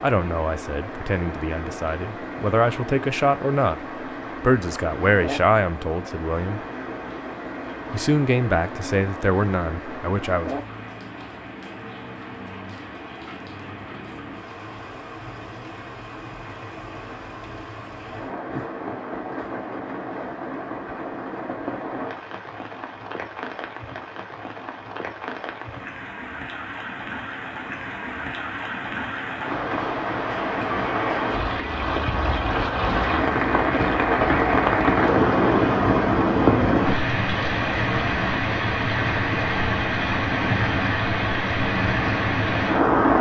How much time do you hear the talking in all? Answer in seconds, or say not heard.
9 s.